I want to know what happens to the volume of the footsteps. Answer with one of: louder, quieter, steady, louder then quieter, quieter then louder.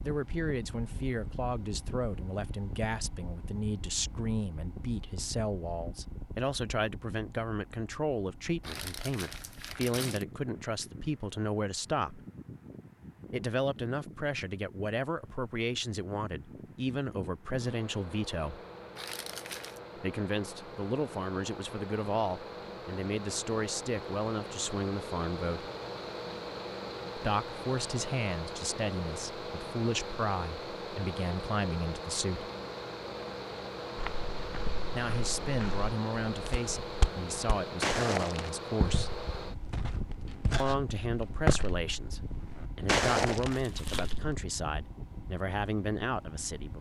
louder.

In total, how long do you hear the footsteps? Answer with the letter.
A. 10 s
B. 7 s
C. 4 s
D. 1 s
A.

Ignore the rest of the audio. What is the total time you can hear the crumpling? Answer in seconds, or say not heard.
3 s.